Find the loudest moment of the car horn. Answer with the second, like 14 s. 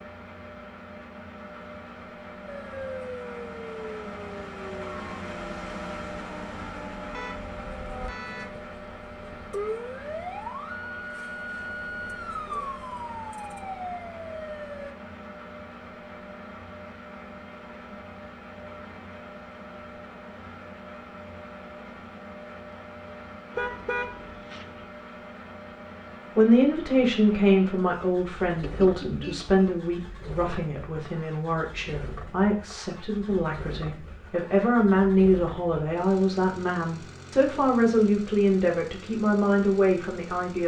24 s.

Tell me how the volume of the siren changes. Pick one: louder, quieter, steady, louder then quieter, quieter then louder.
quieter then louder.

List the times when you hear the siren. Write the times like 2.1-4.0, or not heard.
2.5-14.9.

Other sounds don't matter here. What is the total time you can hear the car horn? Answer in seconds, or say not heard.
4 s.